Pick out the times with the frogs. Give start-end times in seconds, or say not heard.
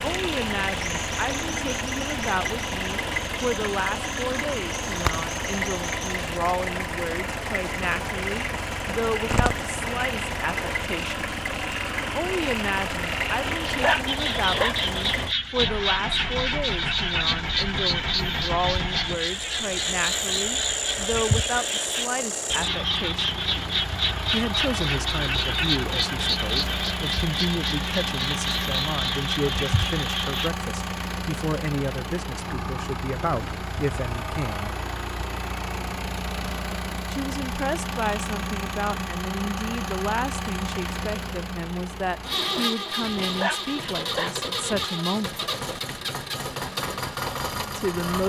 0.0-30.5.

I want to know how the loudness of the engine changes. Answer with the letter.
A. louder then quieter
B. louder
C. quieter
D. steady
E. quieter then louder
D.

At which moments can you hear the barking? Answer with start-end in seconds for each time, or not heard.
13.4-15.3, 43.0-44.9.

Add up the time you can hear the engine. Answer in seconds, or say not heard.
48 s.